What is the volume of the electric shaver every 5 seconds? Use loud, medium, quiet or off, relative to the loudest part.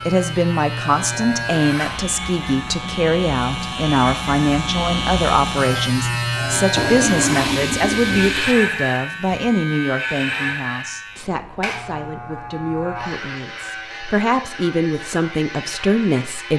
loud, loud, medium, medium.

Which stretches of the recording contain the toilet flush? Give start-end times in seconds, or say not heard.
6.8-8.6.